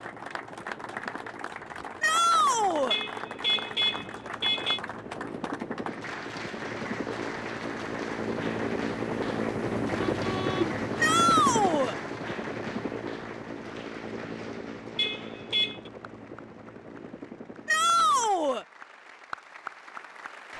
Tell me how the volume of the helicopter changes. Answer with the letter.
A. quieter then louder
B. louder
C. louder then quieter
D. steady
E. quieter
C.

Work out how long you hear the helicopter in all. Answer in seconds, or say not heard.
18 s.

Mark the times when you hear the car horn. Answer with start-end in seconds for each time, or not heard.
2.9-4.8, 9.8-11.7, 14.9-15.9.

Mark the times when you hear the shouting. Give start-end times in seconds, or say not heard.
2.0-3.0, 11.0-11.9, 17.6-18.6.